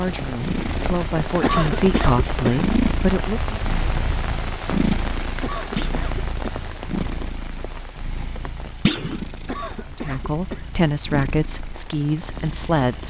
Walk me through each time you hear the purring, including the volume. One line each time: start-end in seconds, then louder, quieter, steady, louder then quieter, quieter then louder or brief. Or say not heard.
0.0-13.0 quieter.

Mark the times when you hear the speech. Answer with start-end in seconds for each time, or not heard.
0.0-3.6, 9.9-13.0.